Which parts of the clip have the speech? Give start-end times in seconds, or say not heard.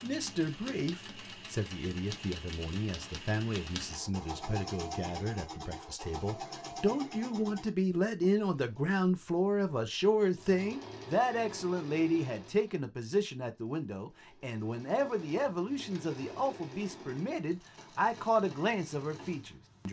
0.0-19.8.